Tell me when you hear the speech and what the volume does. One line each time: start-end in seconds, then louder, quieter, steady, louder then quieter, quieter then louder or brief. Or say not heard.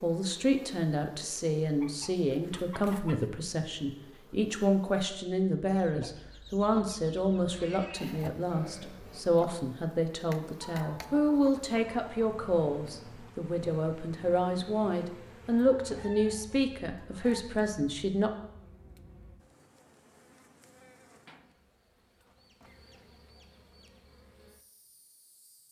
0.0-18.3 steady.